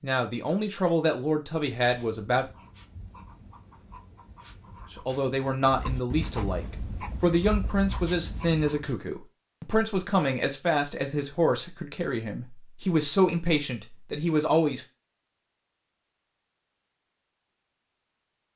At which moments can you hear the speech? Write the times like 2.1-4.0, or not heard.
0.0-2.5, 4.9-14.8.